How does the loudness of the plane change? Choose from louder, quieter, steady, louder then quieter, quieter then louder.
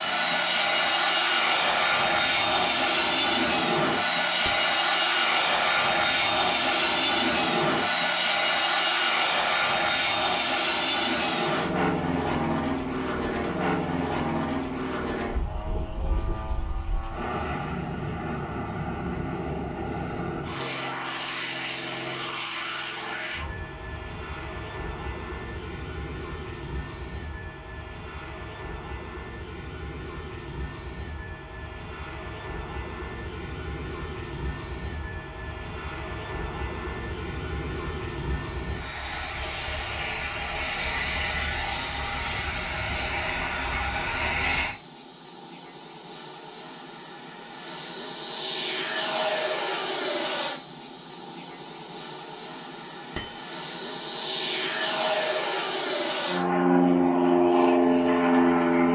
quieter then louder.